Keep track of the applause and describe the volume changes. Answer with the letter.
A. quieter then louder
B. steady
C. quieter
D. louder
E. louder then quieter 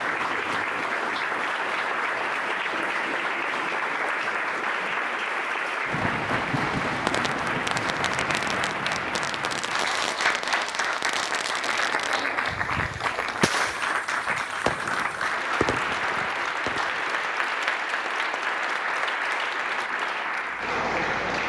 B.